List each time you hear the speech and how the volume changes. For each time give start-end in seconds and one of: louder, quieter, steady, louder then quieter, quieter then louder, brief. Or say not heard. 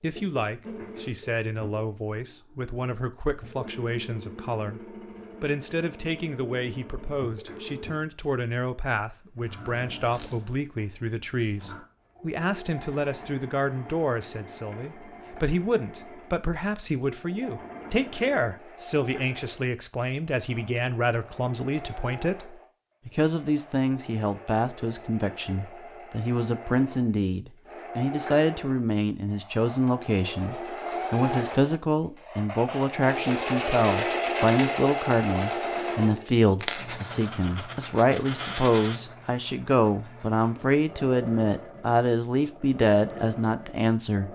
0.0-44.3 louder.